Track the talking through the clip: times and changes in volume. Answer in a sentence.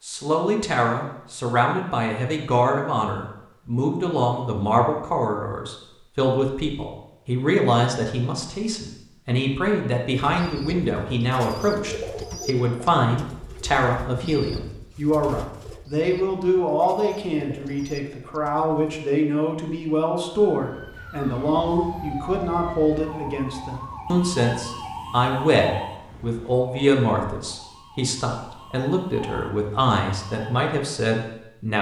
The talking can be heard from 0.0 to 31.7 s, at a steady volume.